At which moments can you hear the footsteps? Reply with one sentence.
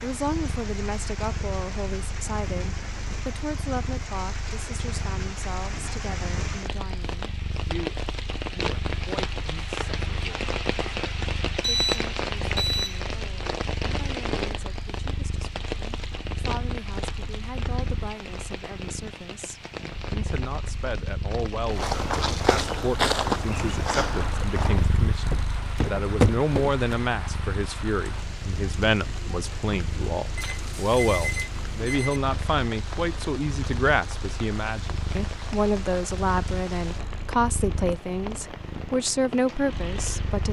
You can hear the footsteps from 21.7 to 26.9 s.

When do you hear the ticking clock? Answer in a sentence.
The ticking clock can't be heard in this clip.